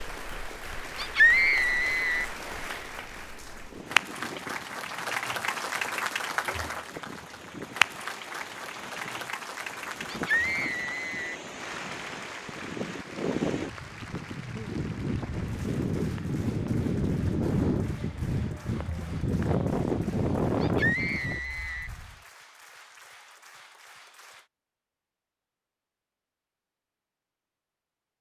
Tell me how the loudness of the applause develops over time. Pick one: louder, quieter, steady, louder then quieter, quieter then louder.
quieter.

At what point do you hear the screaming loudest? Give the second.
1 s.